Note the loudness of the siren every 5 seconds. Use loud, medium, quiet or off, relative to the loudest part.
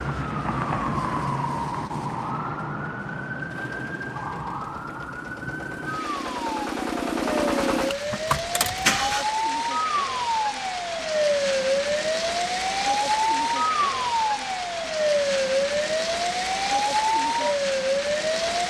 medium, medium, loud, loud.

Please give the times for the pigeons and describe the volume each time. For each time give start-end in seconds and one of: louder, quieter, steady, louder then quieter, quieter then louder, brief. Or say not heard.
not heard.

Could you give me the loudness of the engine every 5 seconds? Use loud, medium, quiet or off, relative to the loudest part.
quiet, loud, off, off.